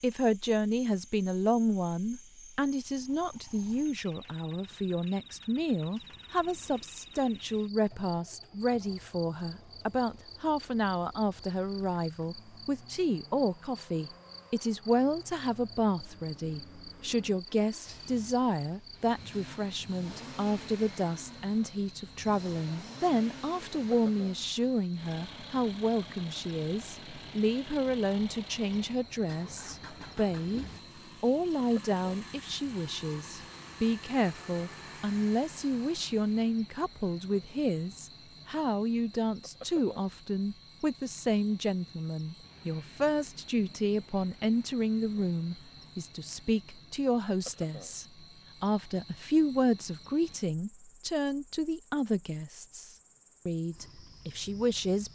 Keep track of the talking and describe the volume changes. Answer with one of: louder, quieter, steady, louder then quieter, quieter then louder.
steady.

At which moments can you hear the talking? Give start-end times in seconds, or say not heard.
0.0-55.1.